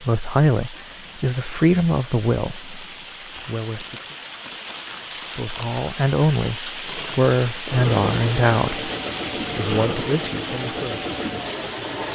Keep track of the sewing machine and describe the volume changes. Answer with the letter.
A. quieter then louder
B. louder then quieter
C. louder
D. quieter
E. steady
E.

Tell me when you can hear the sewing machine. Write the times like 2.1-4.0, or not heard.
6.8-12.0.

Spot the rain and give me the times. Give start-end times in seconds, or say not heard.
0.0-12.0.